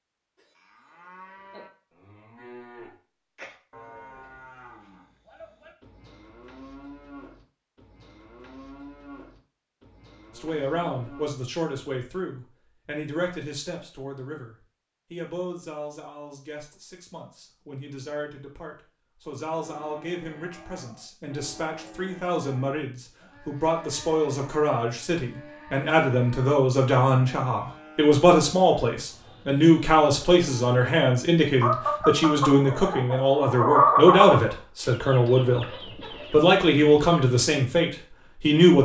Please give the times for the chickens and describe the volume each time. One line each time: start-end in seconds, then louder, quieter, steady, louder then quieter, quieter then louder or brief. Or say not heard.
31.6-37.2 louder then quieter.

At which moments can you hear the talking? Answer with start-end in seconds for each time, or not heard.
10.3-38.8.